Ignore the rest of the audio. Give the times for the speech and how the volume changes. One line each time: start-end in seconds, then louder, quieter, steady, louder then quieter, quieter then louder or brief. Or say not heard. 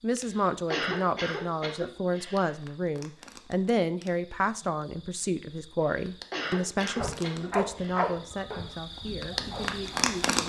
0.0-10.4 quieter.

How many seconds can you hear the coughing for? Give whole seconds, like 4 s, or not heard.
5 s.